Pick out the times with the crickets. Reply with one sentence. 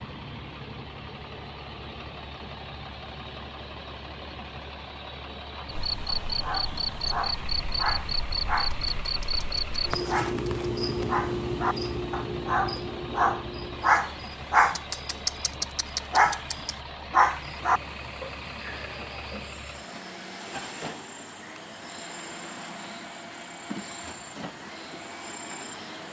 The crickets can be heard from 5.7 to 26.0 s.